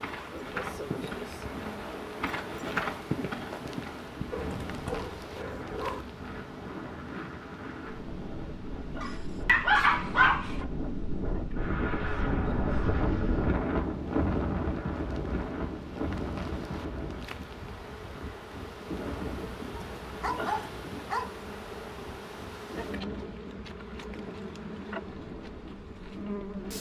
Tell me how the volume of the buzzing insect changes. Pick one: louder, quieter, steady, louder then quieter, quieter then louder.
quieter then louder.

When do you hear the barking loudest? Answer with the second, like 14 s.
10 s.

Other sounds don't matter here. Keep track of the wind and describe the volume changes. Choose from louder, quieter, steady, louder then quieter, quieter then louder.
louder then quieter.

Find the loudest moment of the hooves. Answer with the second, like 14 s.
3 s.